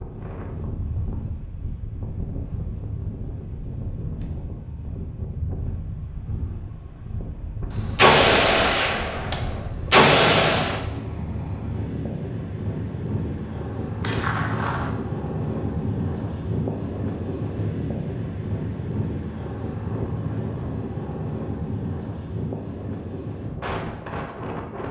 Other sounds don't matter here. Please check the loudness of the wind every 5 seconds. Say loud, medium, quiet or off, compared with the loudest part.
medium, medium, loud, loud, loud.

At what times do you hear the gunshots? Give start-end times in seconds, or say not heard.
7.7-10.8, 14.0-14.9.